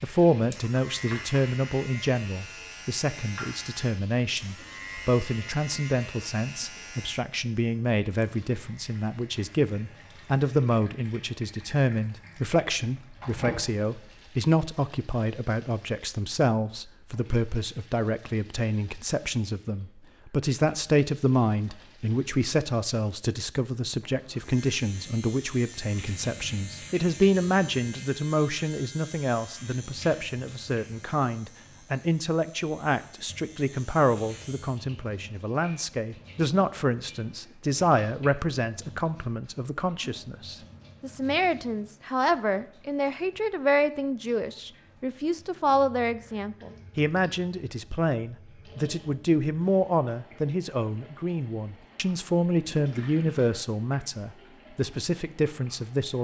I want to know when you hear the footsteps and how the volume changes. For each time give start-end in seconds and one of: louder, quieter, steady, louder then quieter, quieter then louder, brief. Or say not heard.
not heard.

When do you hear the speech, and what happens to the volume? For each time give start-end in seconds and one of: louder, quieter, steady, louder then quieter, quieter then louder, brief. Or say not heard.
0.0-56.1 steady.